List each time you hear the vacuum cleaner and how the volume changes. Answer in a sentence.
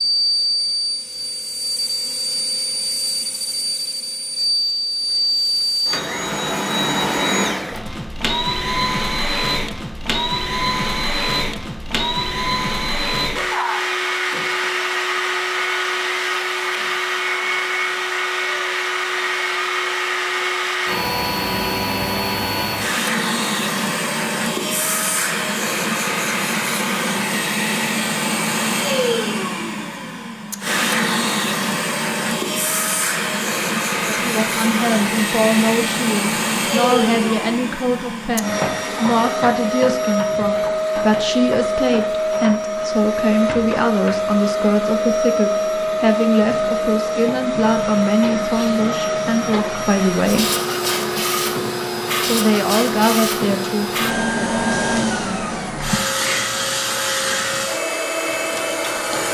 You can hear the vacuum cleaner from 0.0 to 59.2 s, at a steady volume.